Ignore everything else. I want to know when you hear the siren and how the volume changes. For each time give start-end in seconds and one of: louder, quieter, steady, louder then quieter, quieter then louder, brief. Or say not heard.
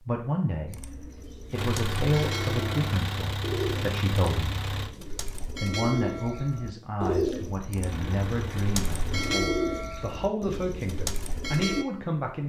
not heard.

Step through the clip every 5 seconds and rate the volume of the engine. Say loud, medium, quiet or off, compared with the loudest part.
loud, medium, off.